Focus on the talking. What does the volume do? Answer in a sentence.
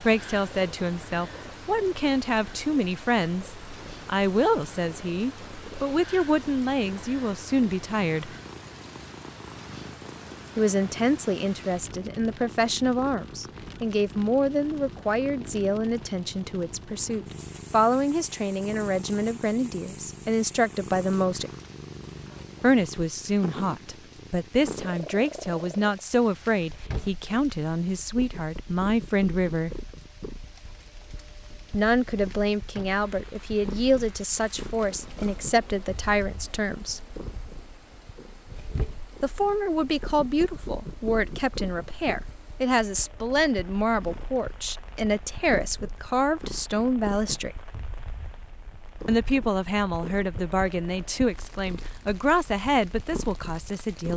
The loudness of the talking stays about the same.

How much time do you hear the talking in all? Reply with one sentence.
The talking can be heard for 45 seconds in total.